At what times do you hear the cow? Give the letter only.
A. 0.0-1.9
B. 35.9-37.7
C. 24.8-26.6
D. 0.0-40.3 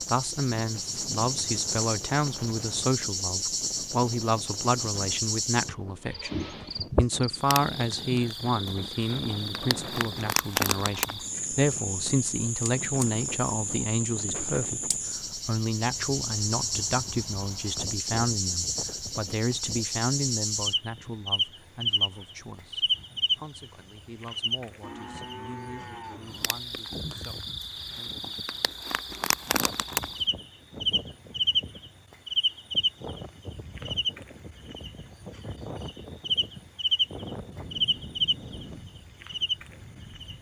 C.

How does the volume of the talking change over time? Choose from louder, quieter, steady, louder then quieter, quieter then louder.
quieter.